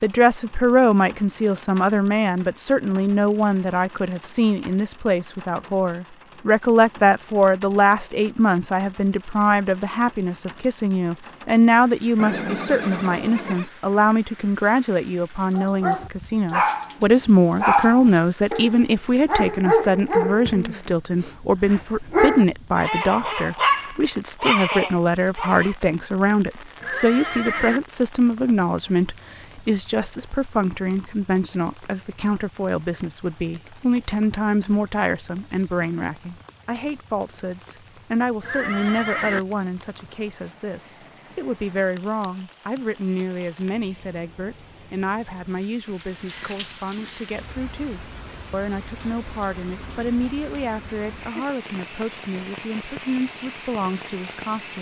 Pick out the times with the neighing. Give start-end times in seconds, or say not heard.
12.2-13.7, 26.8-27.8, 38.4-39.4.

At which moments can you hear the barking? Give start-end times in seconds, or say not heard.
15.6-16.9, 17.6-25.8.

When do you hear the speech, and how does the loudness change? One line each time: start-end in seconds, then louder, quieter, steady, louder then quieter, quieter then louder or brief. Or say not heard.
0.0-54.7 quieter.